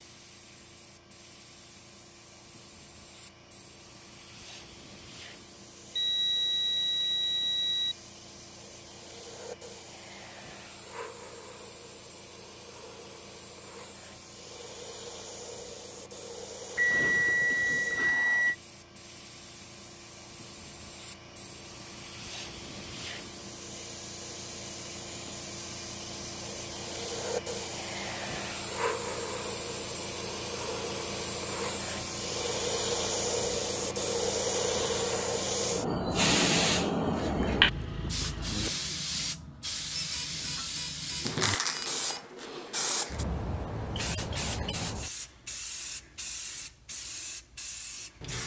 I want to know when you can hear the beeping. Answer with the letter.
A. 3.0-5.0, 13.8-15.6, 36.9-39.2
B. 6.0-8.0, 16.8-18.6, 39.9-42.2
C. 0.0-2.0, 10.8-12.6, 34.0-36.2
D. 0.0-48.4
B.